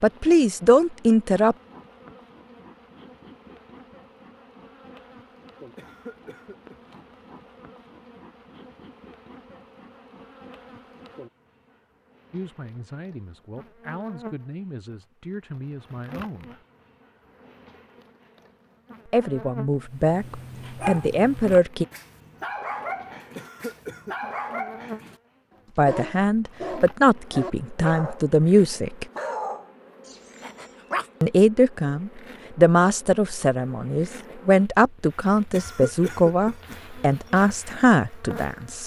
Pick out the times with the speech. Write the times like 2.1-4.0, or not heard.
0.0-1.6, 12.3-16.6, 19.1-21.9, 25.8-29.1, 31.2-38.8.